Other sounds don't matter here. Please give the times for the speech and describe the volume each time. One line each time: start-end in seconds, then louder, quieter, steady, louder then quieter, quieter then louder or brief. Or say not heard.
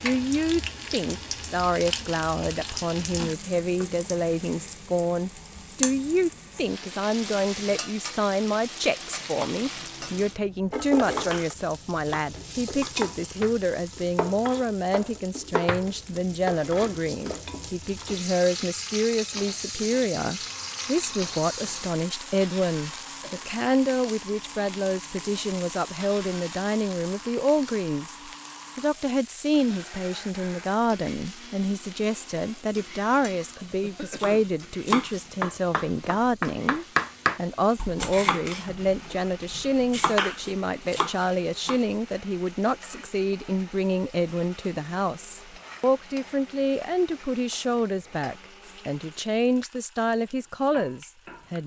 0.0-51.6 steady.